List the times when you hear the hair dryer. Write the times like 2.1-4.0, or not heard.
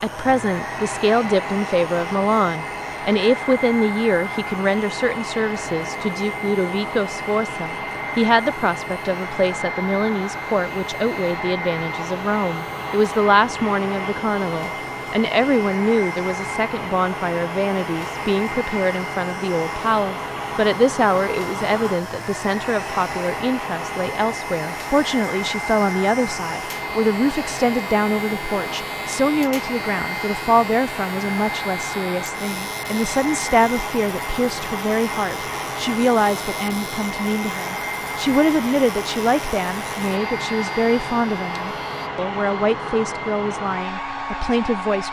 0.0-45.0.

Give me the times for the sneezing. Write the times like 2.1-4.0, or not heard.
not heard.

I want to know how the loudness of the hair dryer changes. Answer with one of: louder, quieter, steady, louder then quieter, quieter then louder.
steady.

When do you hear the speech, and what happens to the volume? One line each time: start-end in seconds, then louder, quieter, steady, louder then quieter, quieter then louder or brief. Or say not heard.
0.0-45.0 steady.